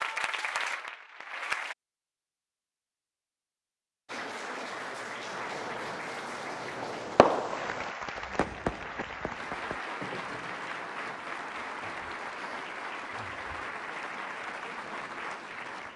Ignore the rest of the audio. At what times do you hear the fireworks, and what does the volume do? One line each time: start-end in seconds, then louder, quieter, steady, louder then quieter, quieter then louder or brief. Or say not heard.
5.2-11.2 louder then quieter.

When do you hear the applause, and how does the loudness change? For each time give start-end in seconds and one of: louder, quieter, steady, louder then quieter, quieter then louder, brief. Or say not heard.
0.0-1.8 brief
4.0-15.9 steady.